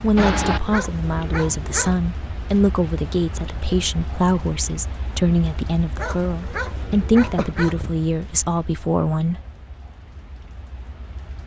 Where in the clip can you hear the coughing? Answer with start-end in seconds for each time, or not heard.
0.1-0.6, 6.9-8.0.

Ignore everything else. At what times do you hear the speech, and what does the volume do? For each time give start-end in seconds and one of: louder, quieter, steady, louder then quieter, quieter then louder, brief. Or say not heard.
0.0-9.4 steady.